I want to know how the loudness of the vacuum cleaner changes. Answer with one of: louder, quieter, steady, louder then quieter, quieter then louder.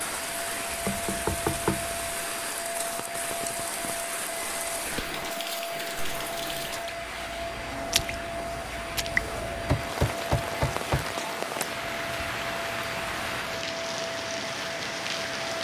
steady.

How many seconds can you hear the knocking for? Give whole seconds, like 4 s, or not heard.
3 s.